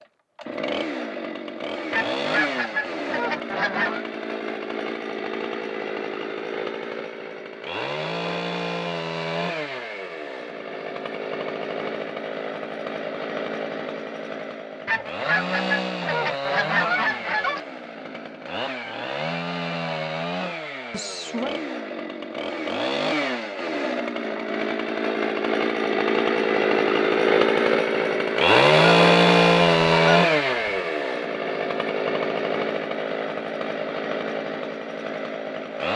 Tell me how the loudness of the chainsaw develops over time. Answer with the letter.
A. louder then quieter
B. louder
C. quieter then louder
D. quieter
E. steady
B.